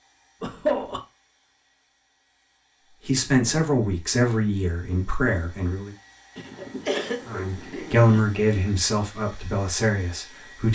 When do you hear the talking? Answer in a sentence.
The talking can be heard from 3.0 to 5.9 s and from 7.2 to 10.7 s.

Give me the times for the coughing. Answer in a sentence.
You can hear the coughing from 0.4 to 1.0 s and from 6.3 to 8.2 s.